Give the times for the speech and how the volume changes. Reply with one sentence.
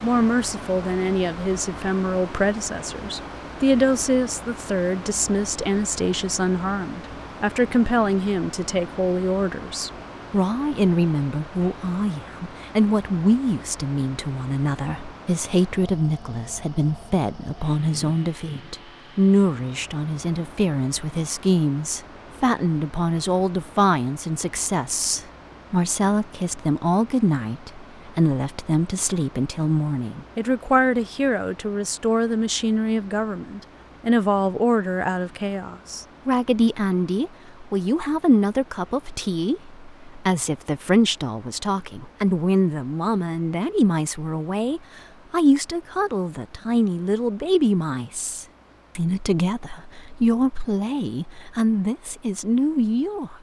The speech can be heard from 0.0 to 53.3 s, at a steady volume.